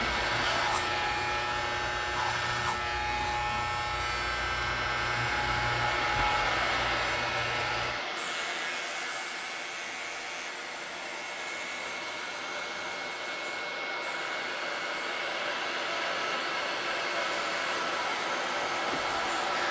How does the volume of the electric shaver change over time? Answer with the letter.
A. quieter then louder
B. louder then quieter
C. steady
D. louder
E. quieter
E.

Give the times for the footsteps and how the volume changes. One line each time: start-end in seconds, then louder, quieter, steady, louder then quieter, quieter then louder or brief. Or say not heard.
not heard.